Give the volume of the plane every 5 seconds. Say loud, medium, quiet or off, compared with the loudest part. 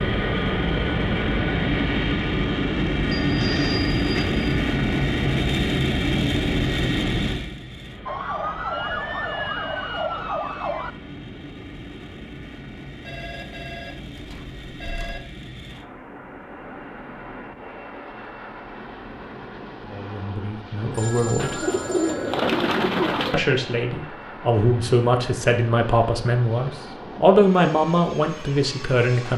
loud, loud, quiet, quiet, quiet, quiet.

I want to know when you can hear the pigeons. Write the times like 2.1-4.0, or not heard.
21.4-23.4.